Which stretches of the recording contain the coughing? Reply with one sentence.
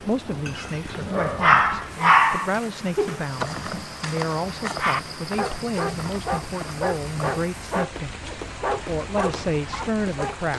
The coughing can't be heard in this clip.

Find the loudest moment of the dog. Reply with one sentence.
The volume of the dog peaks at 2 seconds.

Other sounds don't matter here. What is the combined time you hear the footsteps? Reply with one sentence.
You can hear the footsteps for 7 seconds altogether.